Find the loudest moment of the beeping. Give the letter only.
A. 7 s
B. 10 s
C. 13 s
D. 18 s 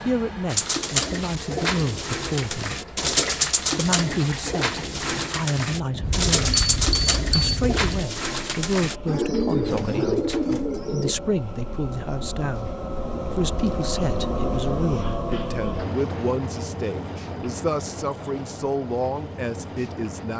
A.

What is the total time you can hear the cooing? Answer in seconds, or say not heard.
11 s.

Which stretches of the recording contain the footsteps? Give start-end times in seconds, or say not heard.
not heard.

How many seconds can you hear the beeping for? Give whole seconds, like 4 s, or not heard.
2 s.